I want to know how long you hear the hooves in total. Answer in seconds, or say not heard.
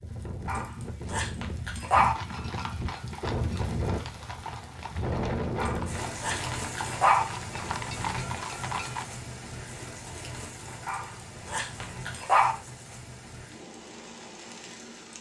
7 s.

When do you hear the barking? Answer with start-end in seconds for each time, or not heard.
0.5-2.1, 5.5-7.2, 10.8-12.6.